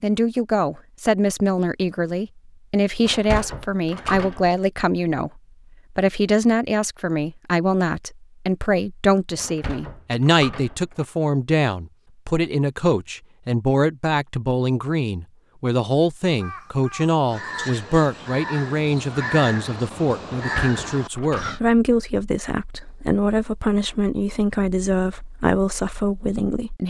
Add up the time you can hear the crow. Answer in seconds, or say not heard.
5 s.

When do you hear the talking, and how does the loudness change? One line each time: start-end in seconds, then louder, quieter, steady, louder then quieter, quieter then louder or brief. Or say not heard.
0.0-26.8 steady.